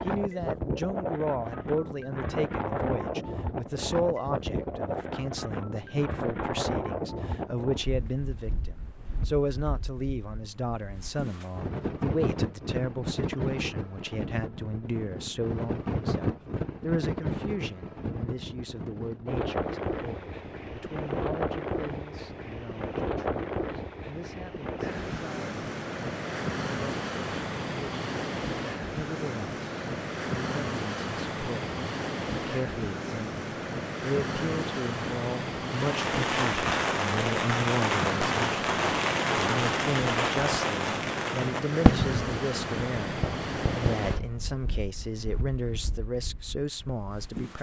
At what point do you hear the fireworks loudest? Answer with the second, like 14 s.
42 s.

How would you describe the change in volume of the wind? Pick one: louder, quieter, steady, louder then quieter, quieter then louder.
steady.